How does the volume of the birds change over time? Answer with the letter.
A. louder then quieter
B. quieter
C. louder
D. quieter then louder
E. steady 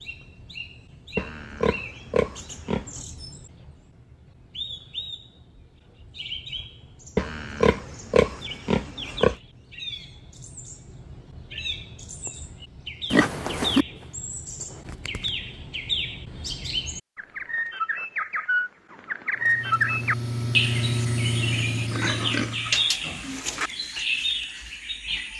C.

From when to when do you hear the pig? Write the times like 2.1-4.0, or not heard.
1.1-3.0, 7.2-9.3, 13.1-13.8, 21.9-23.7.